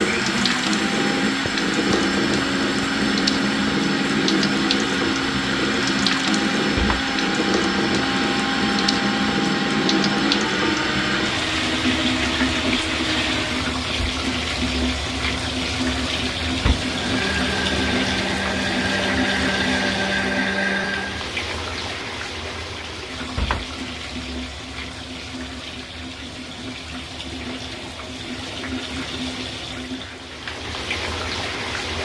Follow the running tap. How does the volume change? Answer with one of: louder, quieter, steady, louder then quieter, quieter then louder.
quieter.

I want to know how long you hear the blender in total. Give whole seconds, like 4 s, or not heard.
18 s.